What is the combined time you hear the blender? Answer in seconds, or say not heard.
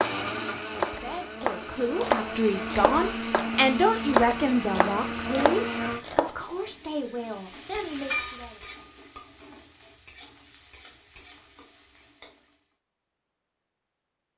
6 s.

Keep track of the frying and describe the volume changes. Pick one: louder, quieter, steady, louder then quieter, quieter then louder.
louder then quieter.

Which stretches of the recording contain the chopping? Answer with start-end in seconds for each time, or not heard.
0.0-6.3.